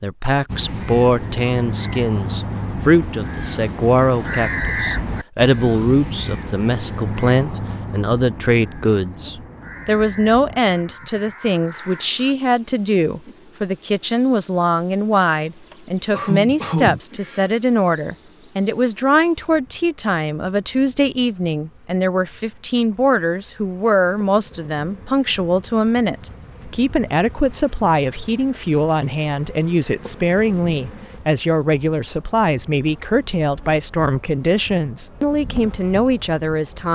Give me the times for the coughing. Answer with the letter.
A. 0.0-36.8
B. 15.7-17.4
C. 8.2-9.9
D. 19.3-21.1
B.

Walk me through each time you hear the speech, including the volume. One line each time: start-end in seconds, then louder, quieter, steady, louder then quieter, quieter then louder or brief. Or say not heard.
0.0-36.8 steady.